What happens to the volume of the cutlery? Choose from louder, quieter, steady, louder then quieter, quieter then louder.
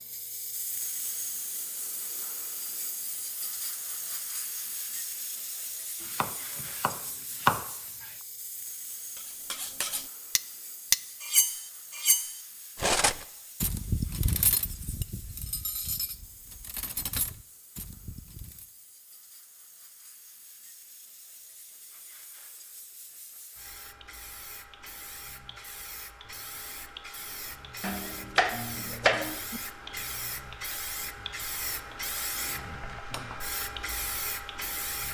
quieter.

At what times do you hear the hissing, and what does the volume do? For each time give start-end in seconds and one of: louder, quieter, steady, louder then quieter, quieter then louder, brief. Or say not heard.
0.0-35.0 quieter then louder.